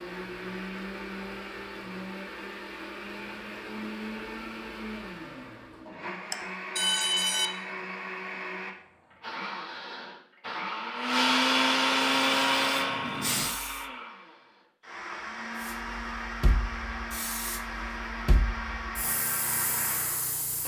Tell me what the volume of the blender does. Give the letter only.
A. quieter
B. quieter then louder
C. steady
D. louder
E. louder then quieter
E.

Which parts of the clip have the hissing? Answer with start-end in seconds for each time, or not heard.
12.0-13.8, 15.6-20.6.